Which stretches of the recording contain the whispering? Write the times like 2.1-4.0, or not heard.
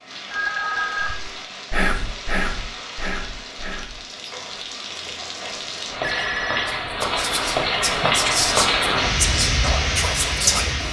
0.9-10.8.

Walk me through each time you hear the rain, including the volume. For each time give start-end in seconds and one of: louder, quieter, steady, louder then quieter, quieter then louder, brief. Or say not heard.
0.0-10.8 louder.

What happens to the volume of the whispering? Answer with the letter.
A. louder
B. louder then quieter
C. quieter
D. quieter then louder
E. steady
D.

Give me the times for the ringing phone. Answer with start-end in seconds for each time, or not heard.
0.3-1.1, 6.0-6.8.